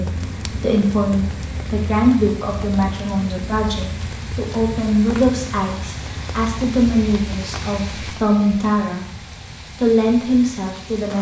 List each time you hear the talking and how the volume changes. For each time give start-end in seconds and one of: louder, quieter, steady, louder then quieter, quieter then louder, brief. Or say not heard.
0.0-9.1 steady
9.8-11.1 brief.